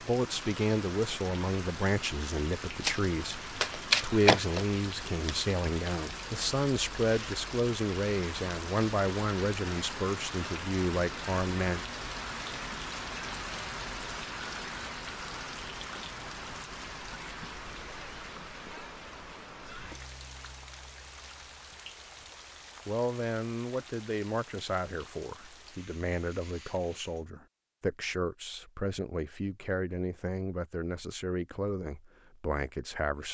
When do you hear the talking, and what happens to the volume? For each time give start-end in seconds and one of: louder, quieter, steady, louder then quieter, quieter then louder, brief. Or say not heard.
0.1-11.8 steady
22.9-33.2 steady.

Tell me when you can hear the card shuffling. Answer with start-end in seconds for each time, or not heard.
2.8-5.3.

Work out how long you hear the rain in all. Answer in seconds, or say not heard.
27 s.